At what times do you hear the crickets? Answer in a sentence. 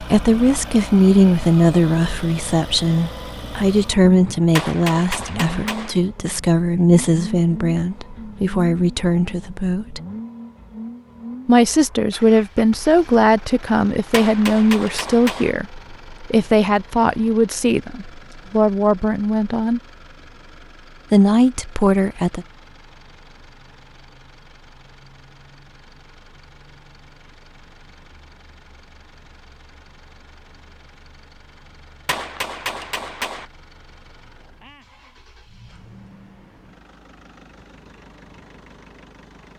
You can't hear the crickets here.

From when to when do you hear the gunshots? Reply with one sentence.
You can hear the gunshots from 4.5 to 6.0 s, from 14.1 to 15.5 s and from 32.0 to 33.5 s.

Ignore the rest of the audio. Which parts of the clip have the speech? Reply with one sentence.
The speech can be heard from 0.0 to 10.0 s, from 11.4 to 19.8 s and from 21.1 to 22.4 s.